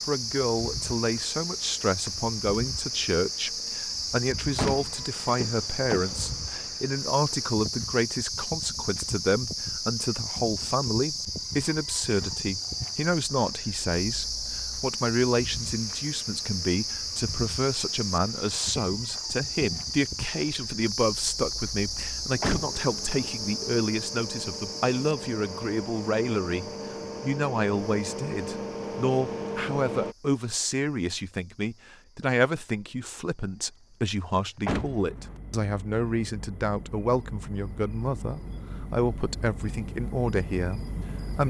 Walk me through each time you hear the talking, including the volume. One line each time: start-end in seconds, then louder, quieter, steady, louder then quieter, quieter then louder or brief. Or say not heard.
0.1-41.4 steady.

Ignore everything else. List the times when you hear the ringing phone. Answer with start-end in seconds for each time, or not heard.
not heard.